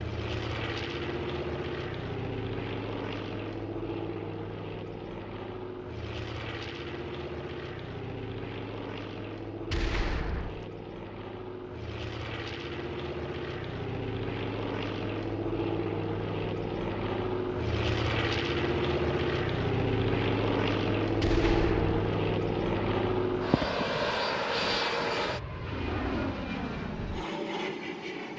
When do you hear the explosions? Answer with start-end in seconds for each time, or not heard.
9.7-10.7, 21.2-21.9.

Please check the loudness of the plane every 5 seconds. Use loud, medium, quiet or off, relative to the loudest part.
medium, medium, medium, loud, loud, medium.